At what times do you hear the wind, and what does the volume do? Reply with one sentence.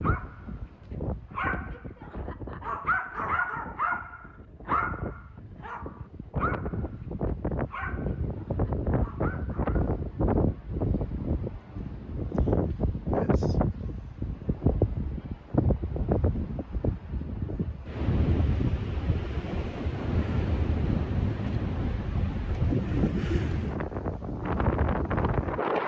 You can hear the wind from 0.0 to 25.8 s, getting louder.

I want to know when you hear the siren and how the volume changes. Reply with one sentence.
The siren can't be heard in this clip.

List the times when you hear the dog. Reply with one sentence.
The dog can be heard from 0.0 to 9.9 s.